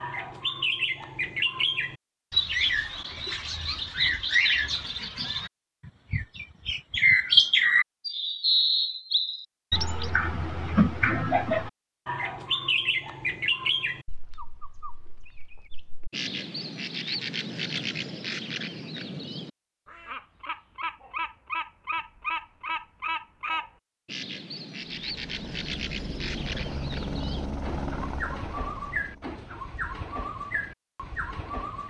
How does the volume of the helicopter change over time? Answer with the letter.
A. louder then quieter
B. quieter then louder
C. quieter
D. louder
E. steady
A.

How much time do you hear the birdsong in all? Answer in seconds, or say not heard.
32 s.